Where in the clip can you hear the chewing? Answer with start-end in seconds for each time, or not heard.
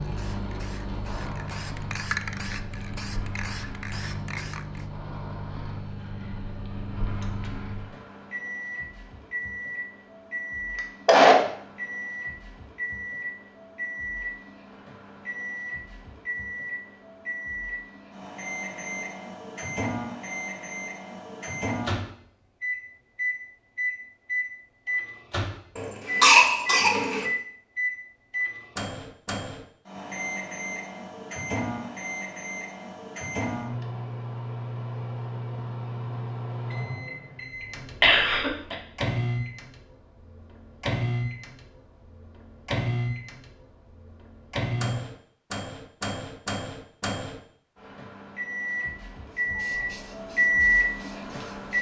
not heard.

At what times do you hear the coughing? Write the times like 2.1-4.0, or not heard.
10.8-11.4, 25.8-27.2, 38.0-38.8.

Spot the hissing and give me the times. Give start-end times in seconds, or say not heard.
0.0-4.8, 49.3-51.7.